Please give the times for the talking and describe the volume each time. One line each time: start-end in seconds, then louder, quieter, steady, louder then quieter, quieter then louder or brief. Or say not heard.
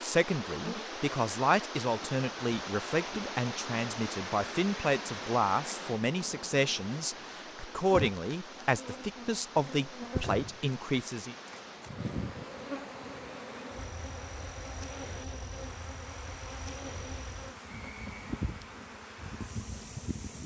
0.0-11.3 steady.